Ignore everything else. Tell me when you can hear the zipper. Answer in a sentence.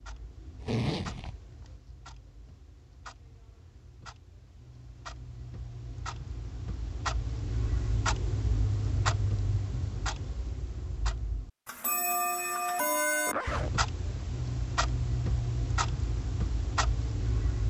The zipper can be heard from 0.6 to 1.4 s and from 13.2 to 13.8 s.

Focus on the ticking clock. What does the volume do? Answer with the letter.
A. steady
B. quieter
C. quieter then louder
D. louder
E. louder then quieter
D.